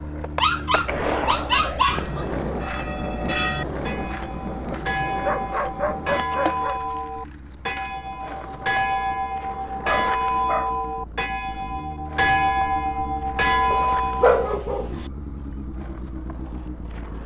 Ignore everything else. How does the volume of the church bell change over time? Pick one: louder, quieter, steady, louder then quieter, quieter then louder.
louder.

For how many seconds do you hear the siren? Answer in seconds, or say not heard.
not heard.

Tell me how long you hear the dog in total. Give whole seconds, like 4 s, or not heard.
6 s.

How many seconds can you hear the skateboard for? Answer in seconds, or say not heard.
17 s.